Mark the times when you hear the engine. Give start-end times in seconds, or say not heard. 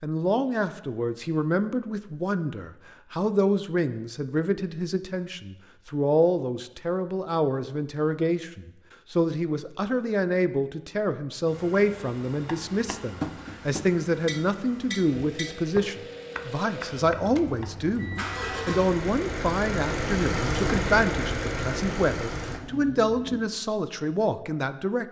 11.4-23.4.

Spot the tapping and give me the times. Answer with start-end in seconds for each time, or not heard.
12.4-18.0.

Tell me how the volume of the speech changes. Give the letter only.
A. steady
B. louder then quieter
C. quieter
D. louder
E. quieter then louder
A.